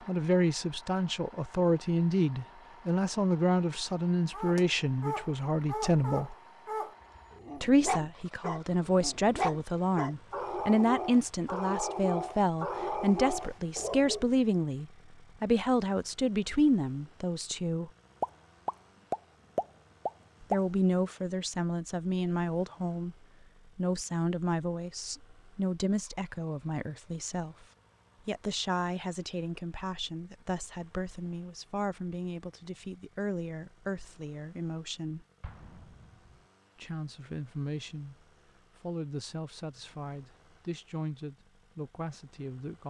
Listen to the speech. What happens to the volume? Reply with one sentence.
The volume of the speech goes down.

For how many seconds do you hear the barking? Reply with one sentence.
The barking can be heard for 10 seconds in total.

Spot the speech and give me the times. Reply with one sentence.
You can hear the speech from 0.1 to 6.3 s, from 7.6 to 17.9 s, from 20.4 to 27.6 s, from 28.2 to 35.2 s and from 36.8 to 42.8 s.